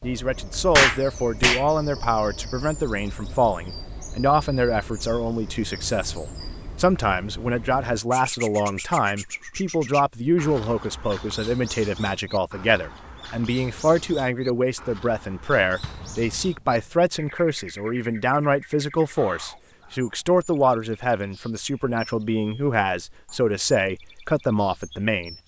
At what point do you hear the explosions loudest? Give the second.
1 s.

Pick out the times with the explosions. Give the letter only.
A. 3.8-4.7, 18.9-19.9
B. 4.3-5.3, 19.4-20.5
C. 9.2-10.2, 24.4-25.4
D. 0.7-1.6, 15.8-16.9
D.